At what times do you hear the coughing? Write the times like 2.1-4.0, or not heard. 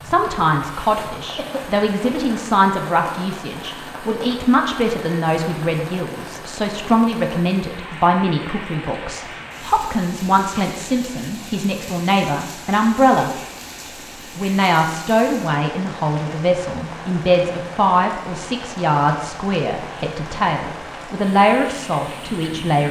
1.4-2.4.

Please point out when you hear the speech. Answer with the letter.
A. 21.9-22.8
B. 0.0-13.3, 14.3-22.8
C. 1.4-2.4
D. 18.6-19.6
B.